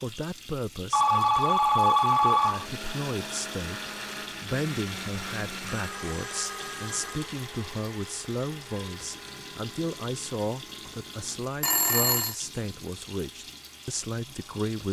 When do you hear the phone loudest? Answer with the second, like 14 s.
2 s.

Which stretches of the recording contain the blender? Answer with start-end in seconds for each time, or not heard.
2.4-14.6.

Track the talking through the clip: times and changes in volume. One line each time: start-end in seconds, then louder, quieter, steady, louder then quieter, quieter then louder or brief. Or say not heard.
0.0-14.8 steady.